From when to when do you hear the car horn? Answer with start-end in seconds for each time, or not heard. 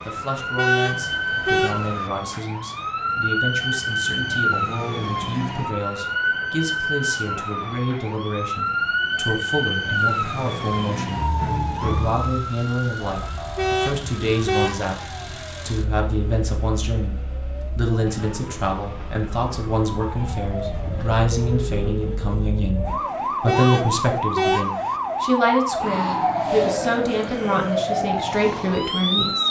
0.6-2.0, 13.6-14.9, 23.4-24.9.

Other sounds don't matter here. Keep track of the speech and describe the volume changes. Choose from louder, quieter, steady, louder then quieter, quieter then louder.
louder.